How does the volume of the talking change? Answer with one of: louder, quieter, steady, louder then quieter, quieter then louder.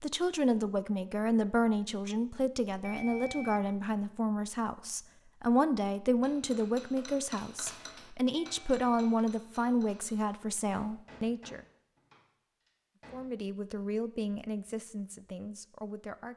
quieter.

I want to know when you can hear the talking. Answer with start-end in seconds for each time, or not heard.
0.0-11.6, 13.1-16.3.